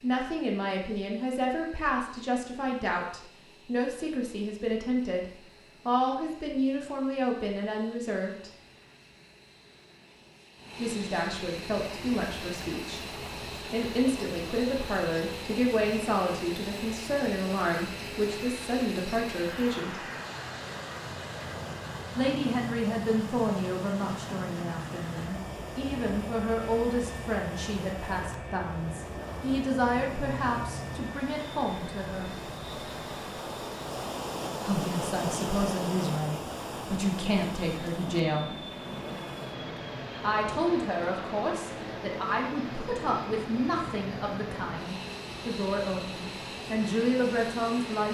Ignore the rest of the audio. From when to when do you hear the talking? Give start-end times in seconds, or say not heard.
0.0-8.5, 10.8-20.1, 22.1-32.3, 34.6-38.5, 40.2-48.0.